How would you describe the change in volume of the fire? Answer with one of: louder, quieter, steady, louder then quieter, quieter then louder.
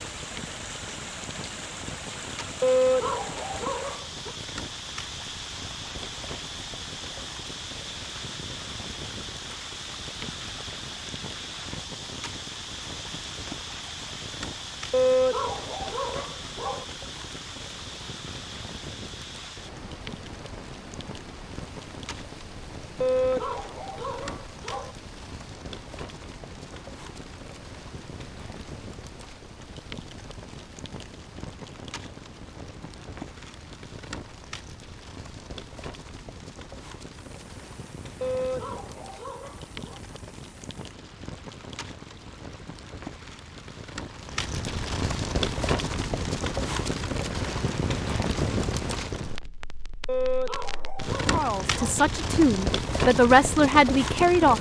louder.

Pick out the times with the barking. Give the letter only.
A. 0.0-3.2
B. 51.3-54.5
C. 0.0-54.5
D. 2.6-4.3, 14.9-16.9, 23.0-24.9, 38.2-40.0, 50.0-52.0
D.